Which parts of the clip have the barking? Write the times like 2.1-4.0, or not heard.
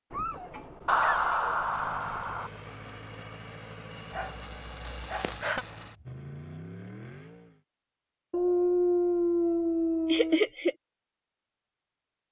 0.1-1.6, 4.1-5.4, 8.3-10.4.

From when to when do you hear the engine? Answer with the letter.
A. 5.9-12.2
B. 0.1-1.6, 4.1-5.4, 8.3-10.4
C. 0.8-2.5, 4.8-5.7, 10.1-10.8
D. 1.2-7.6
D.